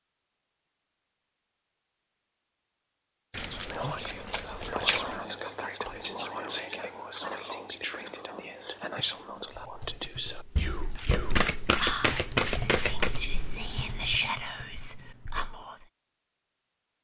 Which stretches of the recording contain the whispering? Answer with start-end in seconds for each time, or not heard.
3.4-15.8.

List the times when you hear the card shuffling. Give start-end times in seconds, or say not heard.
3.3-5.2, 10.6-13.2.